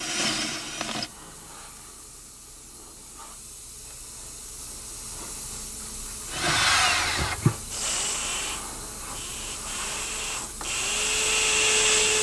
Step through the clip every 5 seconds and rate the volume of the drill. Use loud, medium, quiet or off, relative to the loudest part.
medium, loud, loud.